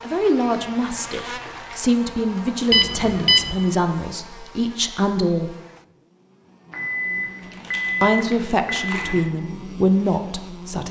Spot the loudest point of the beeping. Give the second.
3 s.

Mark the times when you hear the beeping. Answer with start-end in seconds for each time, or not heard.
2.7-3.5, 6.7-9.0.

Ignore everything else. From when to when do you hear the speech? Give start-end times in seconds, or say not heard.
0.0-5.5, 8.0-10.8.